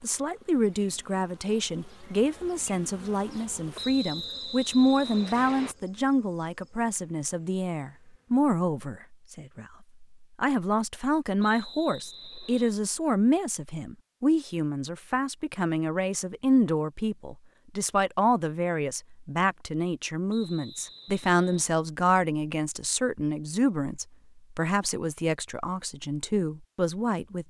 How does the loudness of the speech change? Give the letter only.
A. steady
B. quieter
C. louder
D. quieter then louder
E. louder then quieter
A.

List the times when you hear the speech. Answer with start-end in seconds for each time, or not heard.
0.0-27.4.